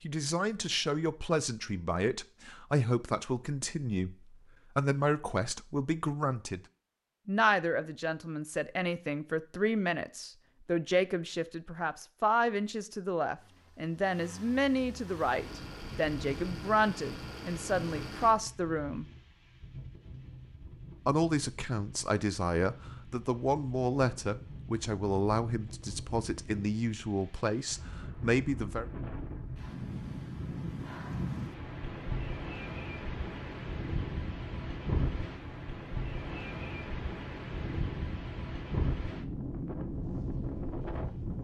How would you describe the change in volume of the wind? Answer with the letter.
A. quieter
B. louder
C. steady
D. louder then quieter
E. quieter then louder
B.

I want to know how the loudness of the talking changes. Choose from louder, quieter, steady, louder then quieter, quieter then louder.
steady.